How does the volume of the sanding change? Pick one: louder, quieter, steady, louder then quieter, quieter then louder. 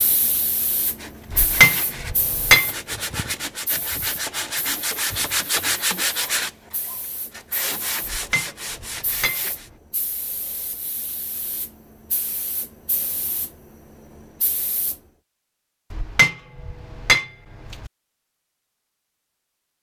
louder then quieter.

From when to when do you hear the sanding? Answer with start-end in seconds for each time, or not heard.
0.7-9.7.